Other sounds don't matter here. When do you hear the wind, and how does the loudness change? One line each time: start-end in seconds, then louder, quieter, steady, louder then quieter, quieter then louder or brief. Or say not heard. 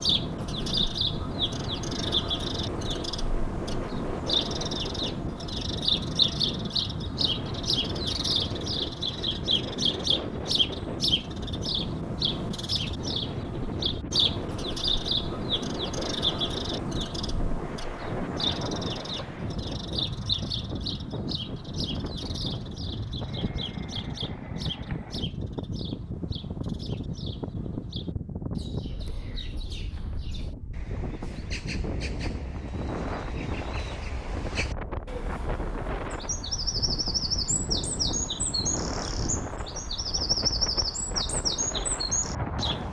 0.0-42.8 steady.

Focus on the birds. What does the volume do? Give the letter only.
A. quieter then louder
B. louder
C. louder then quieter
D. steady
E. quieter
A.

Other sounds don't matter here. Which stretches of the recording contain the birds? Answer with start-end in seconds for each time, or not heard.
0.0-42.8.